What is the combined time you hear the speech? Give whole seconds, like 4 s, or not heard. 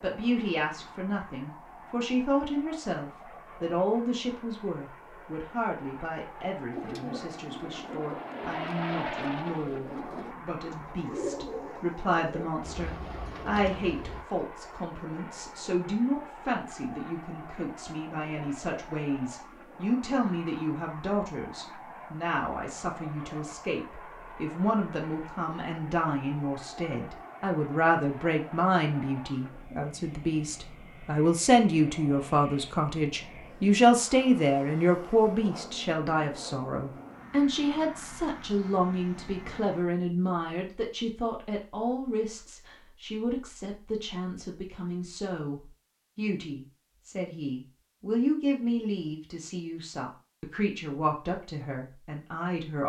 53 s.